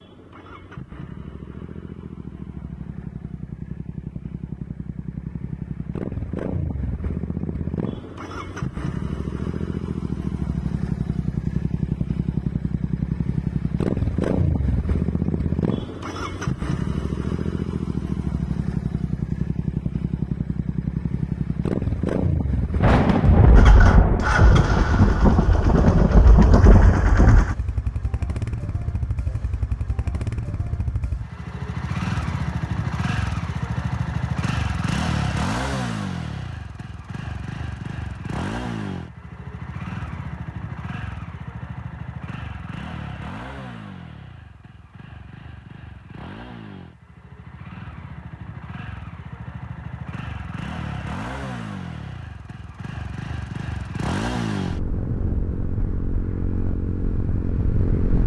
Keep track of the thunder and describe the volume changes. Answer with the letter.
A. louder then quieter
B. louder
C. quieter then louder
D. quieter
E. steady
E.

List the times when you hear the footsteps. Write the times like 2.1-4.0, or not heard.
not heard.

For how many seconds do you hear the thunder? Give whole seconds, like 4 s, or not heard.
5 s.